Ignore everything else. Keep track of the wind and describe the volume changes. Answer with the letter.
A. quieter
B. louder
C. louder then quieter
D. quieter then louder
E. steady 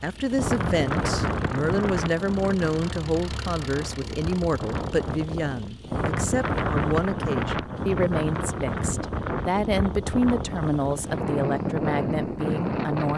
D.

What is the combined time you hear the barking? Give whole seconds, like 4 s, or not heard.
not heard.